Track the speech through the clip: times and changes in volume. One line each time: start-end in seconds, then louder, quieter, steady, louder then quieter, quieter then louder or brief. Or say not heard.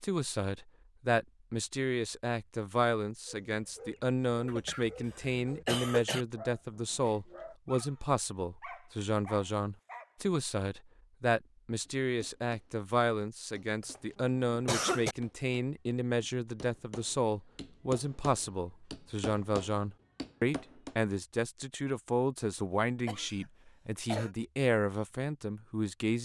0.0-26.2 steady.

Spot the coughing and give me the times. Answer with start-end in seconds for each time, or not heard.
4.5-6.2, 13.8-15.2, 23.1-24.3.